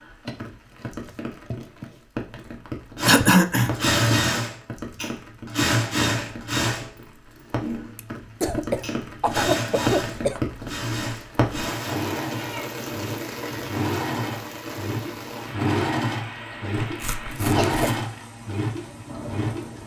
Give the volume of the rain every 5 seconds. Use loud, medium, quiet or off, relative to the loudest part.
medium, loud, loud, medium.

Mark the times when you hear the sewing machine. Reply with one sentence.
The sewing machine can be heard from 3.0 to 19.7 s.